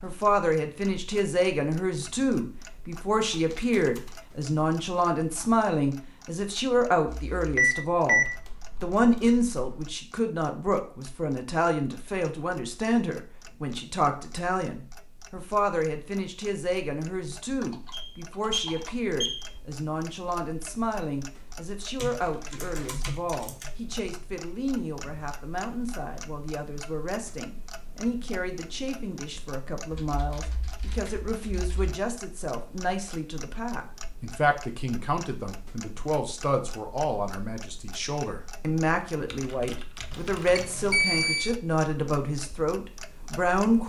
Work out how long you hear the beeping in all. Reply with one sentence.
The beeping can be heard for 4 seconds in total.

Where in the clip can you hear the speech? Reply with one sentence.
You can hear the speech from 0.0 to 43.8 s.